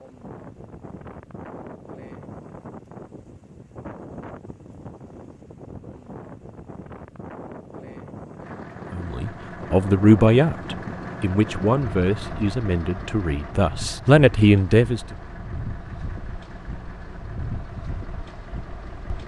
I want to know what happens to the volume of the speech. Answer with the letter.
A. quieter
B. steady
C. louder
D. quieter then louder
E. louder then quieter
D.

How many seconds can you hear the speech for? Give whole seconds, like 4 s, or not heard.
6 s.